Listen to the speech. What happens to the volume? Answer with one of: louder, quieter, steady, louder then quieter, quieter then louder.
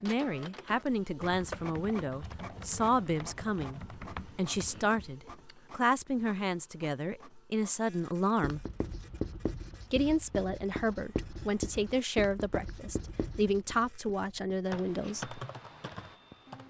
steady.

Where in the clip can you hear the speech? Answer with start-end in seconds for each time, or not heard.
0.0-8.7, 9.9-15.3.